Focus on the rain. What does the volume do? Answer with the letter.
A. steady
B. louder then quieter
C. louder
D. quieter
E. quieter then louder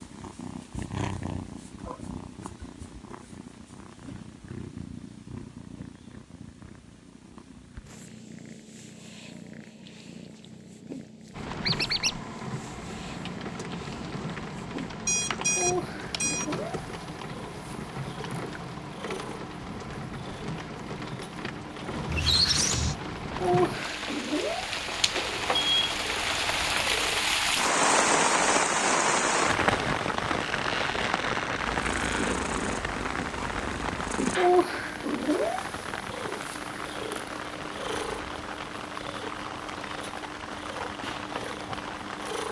B.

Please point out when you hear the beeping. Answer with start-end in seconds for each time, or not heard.
15.1-16.4, 24.9-26.0.